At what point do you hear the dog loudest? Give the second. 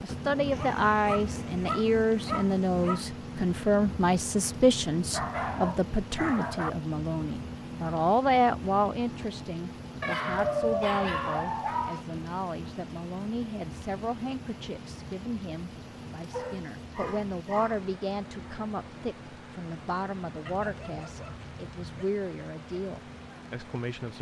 11 s.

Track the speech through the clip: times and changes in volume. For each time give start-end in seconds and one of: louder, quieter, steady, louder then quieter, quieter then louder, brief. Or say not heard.
0.0-24.1 quieter.